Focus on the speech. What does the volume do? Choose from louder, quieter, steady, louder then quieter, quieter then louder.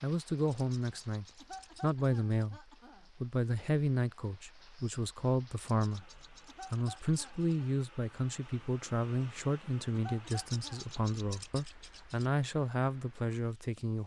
steady.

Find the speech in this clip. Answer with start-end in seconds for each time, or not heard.
0.0-14.0.